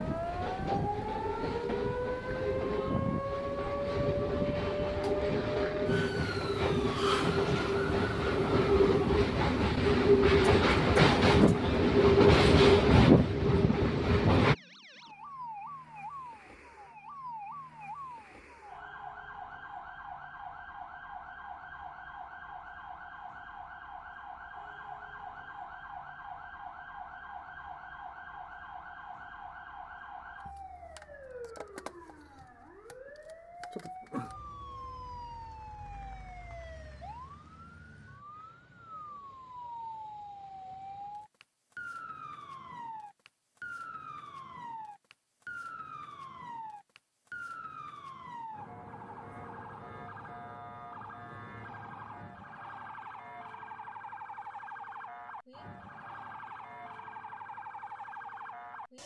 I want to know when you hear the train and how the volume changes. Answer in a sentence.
The train can be heard from 0.0 to 14.6 s, getting louder.